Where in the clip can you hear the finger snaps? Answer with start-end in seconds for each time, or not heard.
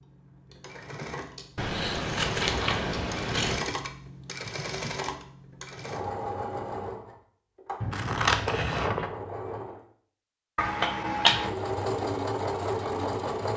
10.6-11.6.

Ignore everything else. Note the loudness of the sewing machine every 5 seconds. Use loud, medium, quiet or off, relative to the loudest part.
medium, medium, loud.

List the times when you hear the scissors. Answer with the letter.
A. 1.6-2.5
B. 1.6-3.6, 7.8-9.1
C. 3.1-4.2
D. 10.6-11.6
B.